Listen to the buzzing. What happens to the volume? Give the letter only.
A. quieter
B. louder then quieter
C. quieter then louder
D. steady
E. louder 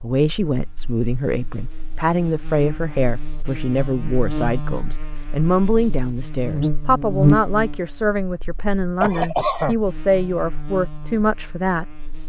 B.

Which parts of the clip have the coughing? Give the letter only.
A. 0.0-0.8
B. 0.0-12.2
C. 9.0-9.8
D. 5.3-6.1
C.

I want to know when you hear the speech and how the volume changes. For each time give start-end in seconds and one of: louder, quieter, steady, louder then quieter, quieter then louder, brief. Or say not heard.
0.0-12.2 steady.